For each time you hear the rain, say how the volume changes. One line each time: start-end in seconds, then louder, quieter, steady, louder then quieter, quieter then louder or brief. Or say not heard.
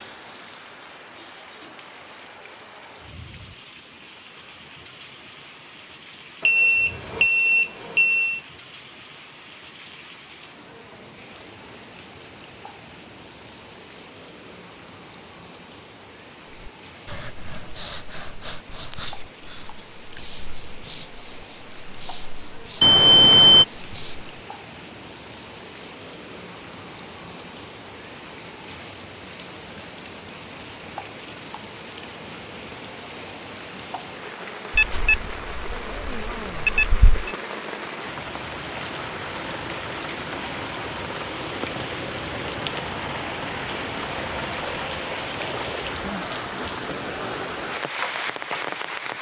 0.0-49.1 louder.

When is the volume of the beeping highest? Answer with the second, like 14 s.
23 s.